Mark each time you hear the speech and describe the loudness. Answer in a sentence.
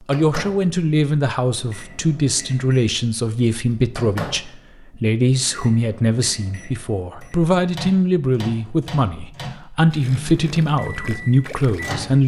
The speech can be heard from 0.0 to 12.2 s, at a steady volume.